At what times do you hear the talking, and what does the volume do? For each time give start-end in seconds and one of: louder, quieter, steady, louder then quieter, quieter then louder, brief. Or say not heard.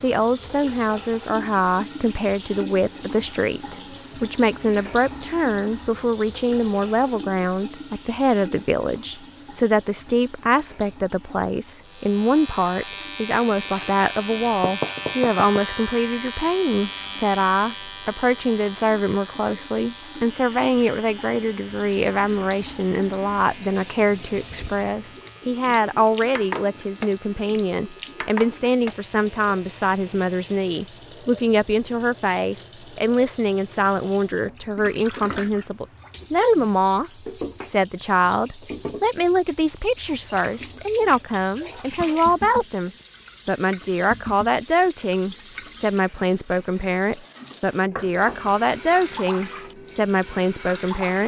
0.0-51.2 steady.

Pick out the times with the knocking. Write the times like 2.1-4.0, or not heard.
14.6-15.7, 47.5-48.5.